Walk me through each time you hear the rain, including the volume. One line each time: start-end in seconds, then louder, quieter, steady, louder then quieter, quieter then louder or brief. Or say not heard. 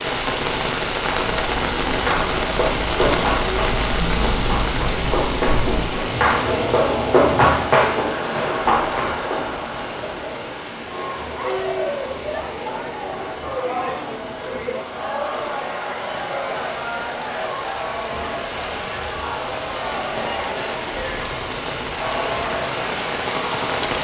0.0-24.0 quieter then louder.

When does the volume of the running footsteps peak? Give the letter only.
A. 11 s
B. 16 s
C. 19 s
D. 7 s
D.